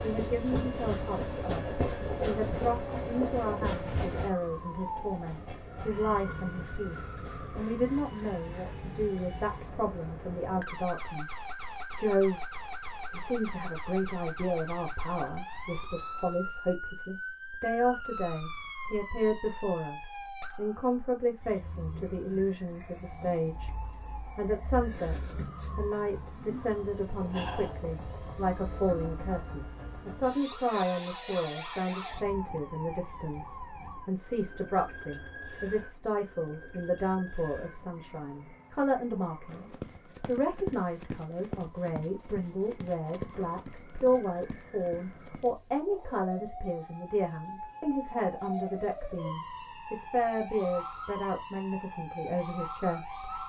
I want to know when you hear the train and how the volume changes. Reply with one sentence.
You can hear the train from 0.0 to 7.8 s, getting quieter.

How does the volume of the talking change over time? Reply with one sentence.
The loudness of the talking stays about the same.